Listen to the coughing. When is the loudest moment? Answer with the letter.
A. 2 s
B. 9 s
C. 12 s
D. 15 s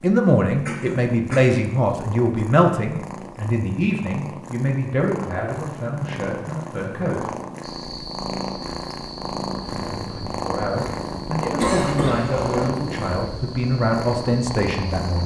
C.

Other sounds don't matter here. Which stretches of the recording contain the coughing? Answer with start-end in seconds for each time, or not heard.
0.7-1.6, 11.6-12.8.